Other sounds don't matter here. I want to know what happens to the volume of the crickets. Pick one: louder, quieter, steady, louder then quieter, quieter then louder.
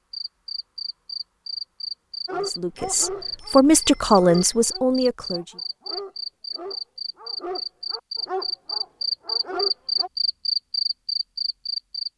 louder.